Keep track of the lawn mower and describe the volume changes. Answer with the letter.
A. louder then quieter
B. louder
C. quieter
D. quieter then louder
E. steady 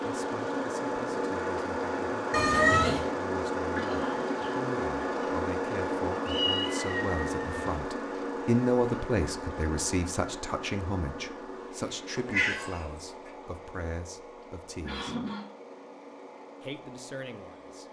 C.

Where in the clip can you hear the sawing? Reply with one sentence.
You can't hear the sawing here.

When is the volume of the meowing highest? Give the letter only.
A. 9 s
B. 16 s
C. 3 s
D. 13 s
C.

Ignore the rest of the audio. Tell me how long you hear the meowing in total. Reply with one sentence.
The meowing can be heard for 3 seconds in total.